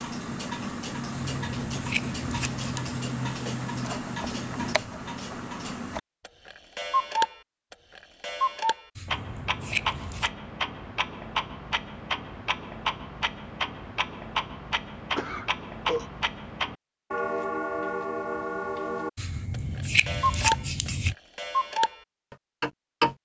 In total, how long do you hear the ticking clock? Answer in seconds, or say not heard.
23 s.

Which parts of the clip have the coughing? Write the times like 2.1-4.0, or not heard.
15.2-16.1.